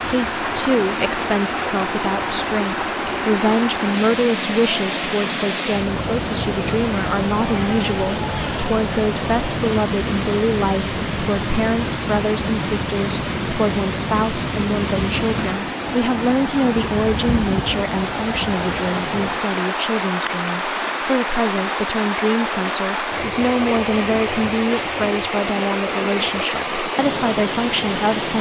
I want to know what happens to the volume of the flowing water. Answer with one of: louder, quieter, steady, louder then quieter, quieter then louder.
steady.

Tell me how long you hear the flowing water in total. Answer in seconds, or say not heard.
28 s.